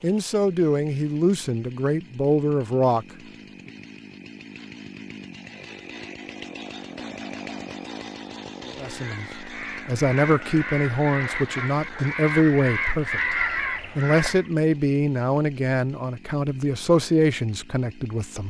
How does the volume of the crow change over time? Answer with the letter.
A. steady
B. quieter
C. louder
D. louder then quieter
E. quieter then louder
C.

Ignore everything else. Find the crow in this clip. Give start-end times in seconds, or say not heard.
8.8-14.5.